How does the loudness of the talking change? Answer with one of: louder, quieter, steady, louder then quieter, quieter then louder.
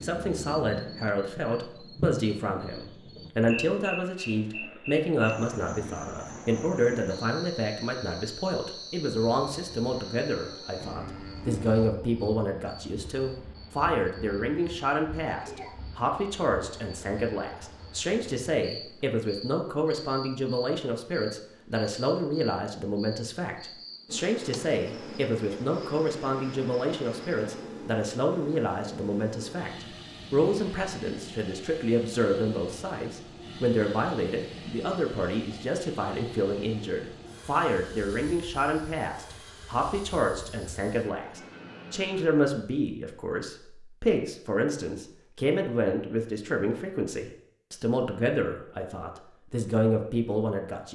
steady.